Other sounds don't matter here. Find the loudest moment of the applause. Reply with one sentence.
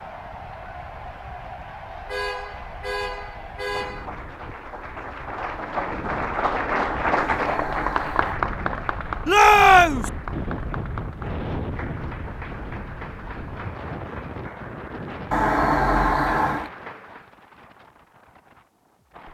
The loudest moment of the applause is at 7 seconds.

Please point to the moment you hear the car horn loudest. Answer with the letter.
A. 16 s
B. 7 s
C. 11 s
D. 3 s
A.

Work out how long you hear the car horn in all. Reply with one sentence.
The car horn can be heard for 5 seconds in total.